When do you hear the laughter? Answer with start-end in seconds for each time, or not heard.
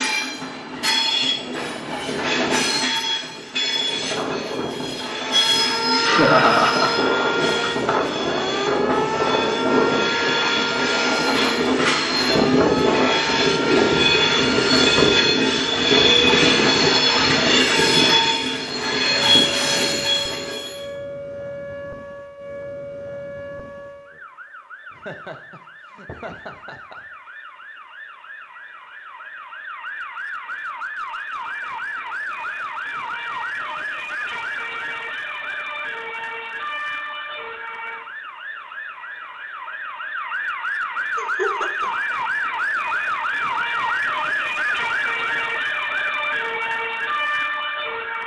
6.0-8.2, 24.9-27.0, 41.1-41.9.